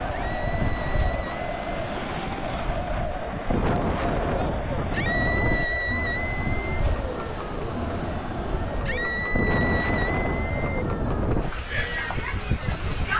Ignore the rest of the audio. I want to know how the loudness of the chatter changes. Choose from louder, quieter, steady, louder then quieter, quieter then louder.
steady.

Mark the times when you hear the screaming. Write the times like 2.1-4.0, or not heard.
0.1-1.7, 4.9-6.8, 8.8-10.8.